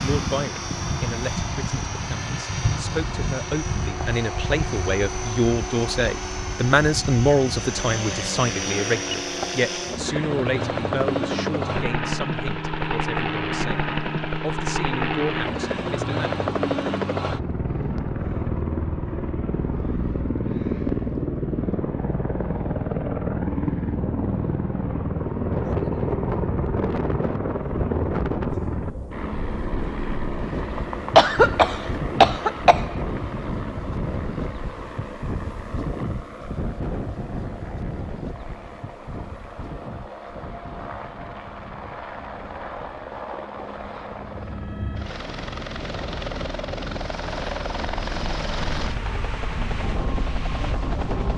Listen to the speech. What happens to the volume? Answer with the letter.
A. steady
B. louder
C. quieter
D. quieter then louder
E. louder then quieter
E.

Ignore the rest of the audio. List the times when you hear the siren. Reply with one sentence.
The siren can't be heard in this clip.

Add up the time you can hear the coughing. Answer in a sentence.
You can hear the coughing for 2 seconds altogether.